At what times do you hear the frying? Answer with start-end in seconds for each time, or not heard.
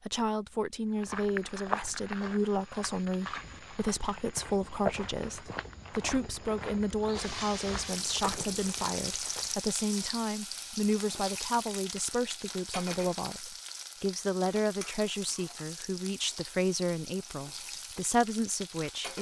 7.2-19.1.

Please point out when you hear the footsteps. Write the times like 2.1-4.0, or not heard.
0.9-9.6.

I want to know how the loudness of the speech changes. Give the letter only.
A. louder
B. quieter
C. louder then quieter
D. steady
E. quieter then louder
D.